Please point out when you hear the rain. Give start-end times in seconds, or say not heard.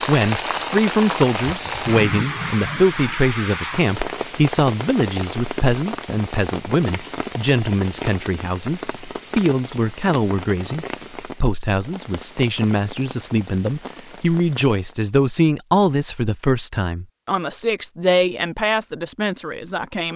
0.0-15.0.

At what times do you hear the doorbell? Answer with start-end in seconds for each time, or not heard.
not heard.